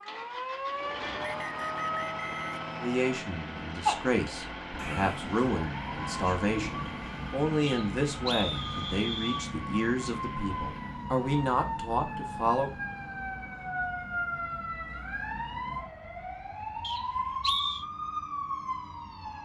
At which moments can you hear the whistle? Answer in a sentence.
The whistle can be heard from 1.2 to 3.0 s, from 7.7 to 9.4 s and from 16.8 to 17.9 s.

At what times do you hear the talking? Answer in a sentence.
The talking can be heard from 2.8 to 12.7 s.